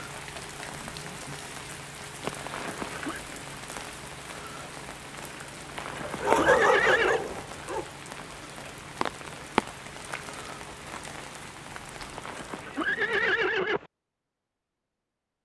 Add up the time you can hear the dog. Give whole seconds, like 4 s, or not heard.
2 s.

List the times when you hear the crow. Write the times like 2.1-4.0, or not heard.
not heard.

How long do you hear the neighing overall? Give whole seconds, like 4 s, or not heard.
4 s.